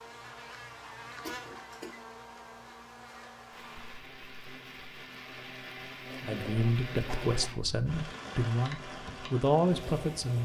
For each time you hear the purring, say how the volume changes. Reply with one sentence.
The purring can't be heard in this clip.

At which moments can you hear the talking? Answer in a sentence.
You can hear the talking from 6.2 to 10.3 s.